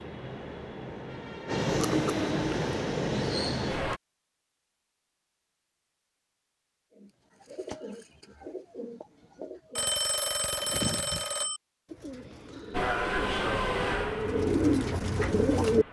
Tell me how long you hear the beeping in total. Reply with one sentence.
You can hear the beeping for 3 seconds altogether.